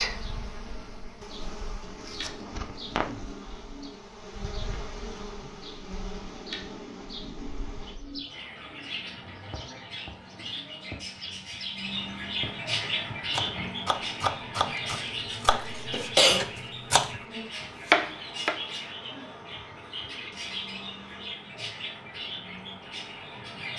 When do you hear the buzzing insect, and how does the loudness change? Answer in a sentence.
You can hear the buzzing insect from 0.0 to 23.7 s, getting quieter.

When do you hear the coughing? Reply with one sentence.
The coughing can be heard from 15.5 to 16.4 s.